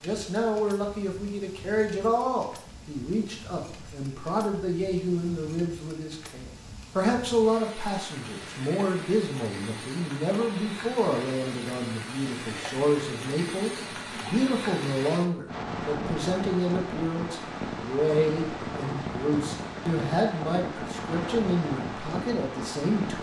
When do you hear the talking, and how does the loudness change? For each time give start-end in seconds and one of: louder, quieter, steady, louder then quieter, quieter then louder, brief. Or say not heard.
0.0-23.1 steady.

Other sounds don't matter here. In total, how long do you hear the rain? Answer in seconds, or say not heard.
23 s.